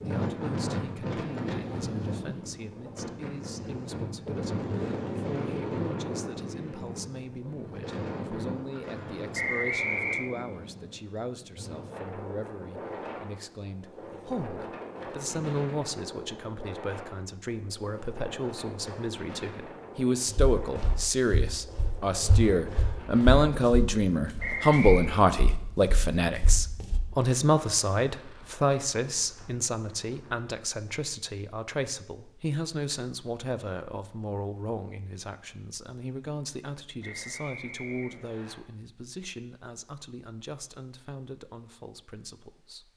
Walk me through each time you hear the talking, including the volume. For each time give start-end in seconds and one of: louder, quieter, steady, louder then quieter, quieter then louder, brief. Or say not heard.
0.0-42.9 louder then quieter.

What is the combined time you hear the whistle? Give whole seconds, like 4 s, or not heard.
3 s.